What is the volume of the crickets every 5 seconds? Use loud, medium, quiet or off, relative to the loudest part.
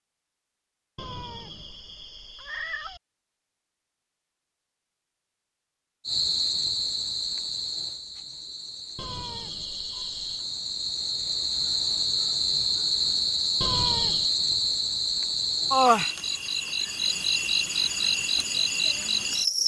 off, medium, loud, loud.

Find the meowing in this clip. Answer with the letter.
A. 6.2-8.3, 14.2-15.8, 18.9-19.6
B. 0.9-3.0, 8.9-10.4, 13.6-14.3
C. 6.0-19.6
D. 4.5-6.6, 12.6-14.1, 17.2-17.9
B.